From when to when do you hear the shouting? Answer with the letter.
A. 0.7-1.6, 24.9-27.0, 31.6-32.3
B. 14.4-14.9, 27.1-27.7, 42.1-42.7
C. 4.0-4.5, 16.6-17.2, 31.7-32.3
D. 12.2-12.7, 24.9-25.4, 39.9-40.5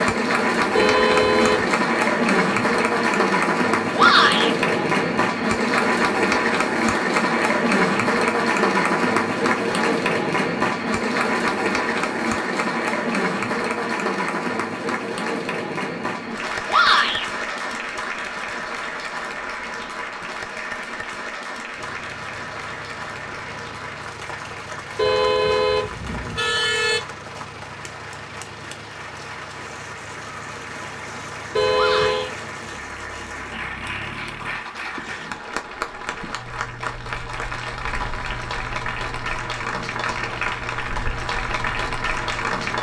C.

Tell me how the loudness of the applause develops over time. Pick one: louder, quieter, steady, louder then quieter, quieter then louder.
quieter then louder.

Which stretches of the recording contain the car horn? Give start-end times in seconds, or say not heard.
0.7-1.6, 24.9-27.0, 31.6-32.3.